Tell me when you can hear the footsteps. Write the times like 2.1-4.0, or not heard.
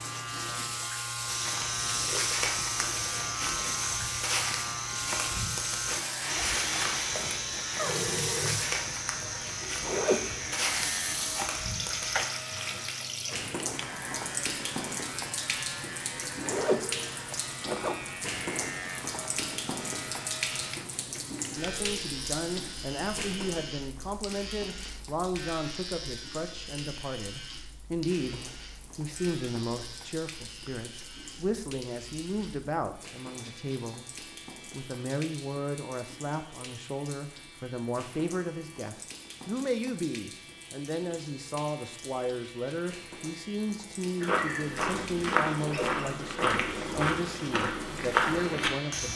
1.2-12.8, 44.2-49.1.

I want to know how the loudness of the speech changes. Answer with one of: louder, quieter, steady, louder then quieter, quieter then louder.
steady.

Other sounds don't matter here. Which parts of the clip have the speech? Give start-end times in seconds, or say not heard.
21.6-49.1.